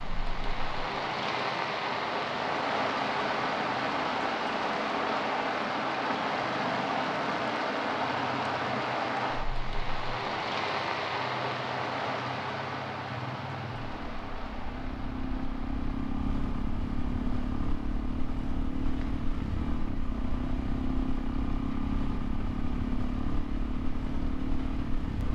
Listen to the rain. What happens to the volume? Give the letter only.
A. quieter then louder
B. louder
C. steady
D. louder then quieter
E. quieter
E.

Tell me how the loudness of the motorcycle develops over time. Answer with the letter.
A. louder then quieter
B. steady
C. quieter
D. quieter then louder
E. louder
E.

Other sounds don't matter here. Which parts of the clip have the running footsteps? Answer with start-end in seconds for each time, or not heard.
not heard.